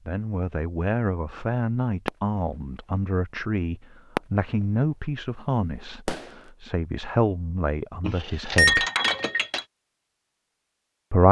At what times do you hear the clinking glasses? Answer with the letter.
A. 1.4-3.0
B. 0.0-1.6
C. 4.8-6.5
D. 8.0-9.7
D.